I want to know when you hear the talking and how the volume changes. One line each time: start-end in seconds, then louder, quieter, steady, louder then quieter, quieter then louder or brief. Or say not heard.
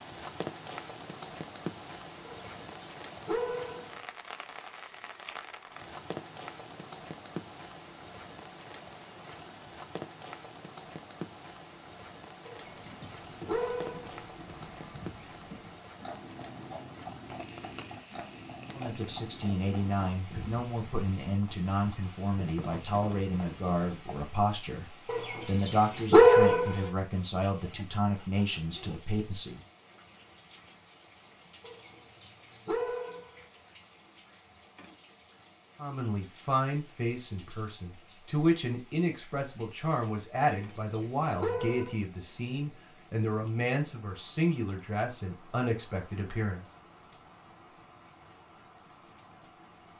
18.7-29.6 steady
35.8-46.6 steady.